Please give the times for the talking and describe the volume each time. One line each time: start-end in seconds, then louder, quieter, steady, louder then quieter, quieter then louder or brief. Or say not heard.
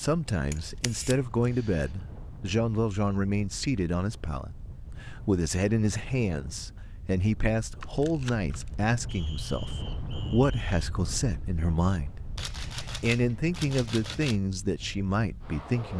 0.0-15.9 steady.